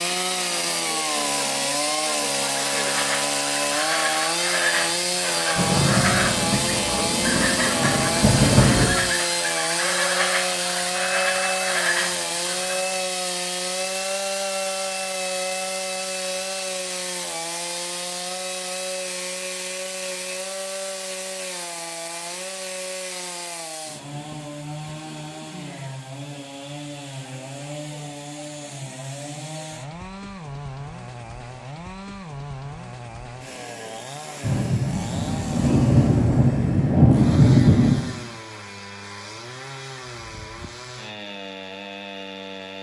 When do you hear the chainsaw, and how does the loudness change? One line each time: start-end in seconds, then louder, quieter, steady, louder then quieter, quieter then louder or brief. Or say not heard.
0.0-42.7 quieter.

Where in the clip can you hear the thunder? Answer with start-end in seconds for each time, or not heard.
5.5-8.9, 34.4-38.1.